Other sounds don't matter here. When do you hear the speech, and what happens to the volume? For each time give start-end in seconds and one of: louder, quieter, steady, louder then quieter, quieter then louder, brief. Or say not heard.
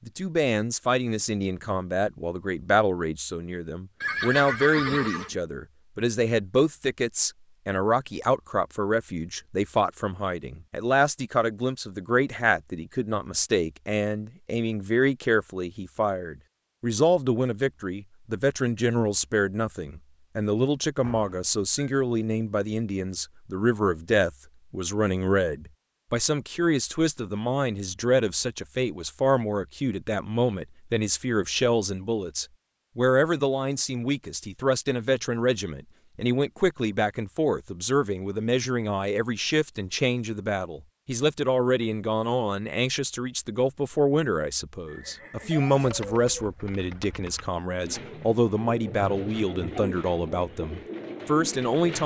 0.1-52.0 steady.